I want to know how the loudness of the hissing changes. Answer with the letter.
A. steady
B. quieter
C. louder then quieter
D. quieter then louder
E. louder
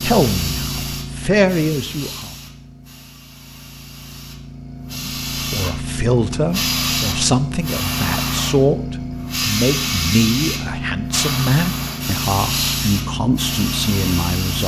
E.